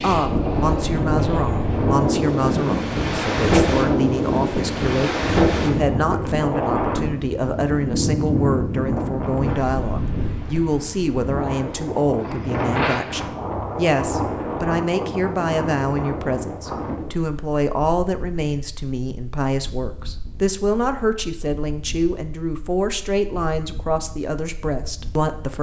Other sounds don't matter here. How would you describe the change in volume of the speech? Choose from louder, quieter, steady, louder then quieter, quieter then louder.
steady.